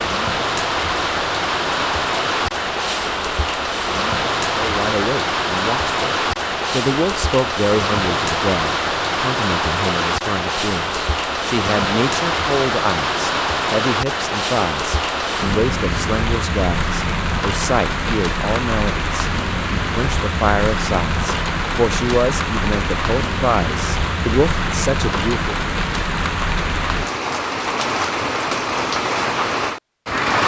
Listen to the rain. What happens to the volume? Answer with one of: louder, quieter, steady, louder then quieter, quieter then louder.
steady.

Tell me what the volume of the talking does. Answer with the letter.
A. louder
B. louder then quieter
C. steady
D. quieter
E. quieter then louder
C.